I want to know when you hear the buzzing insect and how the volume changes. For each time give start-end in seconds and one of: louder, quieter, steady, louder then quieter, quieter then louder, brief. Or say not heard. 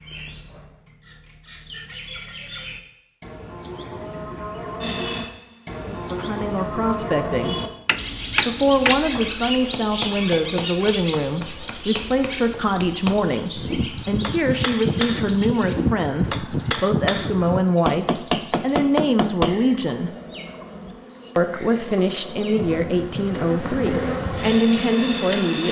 4.8-6.5 brief
19.9-25.6 louder.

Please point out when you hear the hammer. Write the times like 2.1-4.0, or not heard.
7.8-19.6.